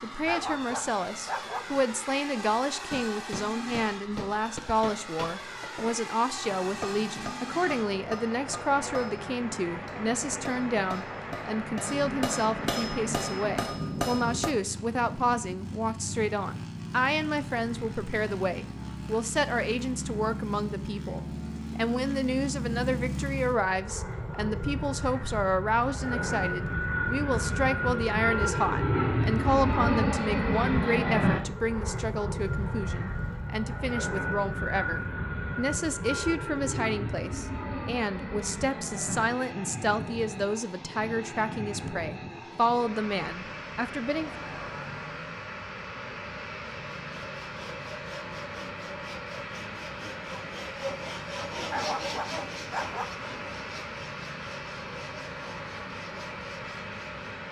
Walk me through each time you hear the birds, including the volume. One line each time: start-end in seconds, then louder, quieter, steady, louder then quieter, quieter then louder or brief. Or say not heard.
not heard.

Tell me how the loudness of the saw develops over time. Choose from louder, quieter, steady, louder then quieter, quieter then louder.
louder then quieter.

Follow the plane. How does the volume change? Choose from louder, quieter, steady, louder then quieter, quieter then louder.
louder then quieter.